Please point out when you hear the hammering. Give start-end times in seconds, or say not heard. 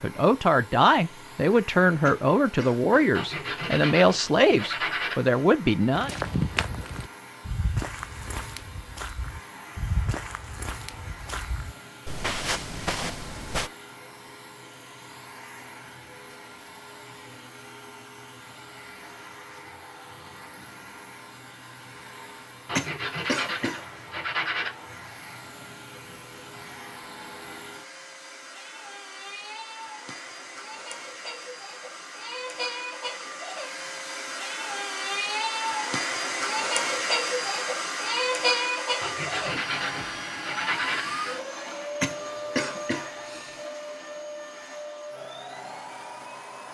not heard.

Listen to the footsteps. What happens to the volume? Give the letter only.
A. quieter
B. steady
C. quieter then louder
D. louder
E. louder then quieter
C.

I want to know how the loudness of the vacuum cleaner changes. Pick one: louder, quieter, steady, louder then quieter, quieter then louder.
louder.